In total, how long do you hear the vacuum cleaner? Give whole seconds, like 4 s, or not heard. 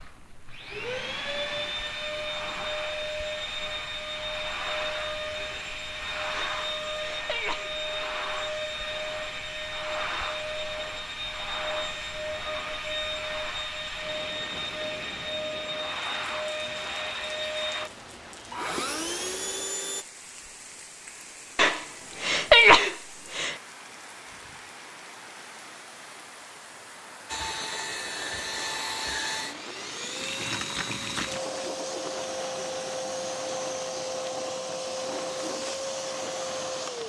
30 s.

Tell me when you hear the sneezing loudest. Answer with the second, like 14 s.
23 s.